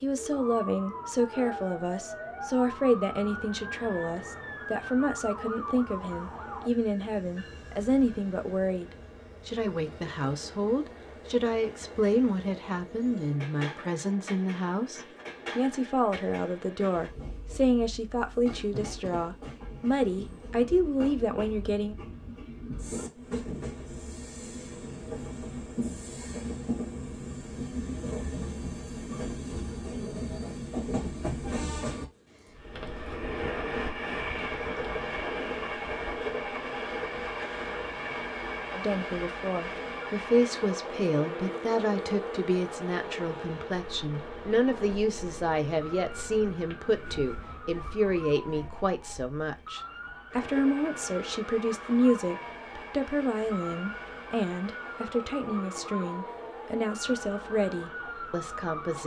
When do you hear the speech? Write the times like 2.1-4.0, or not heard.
0.0-21.9, 38.7-59.0.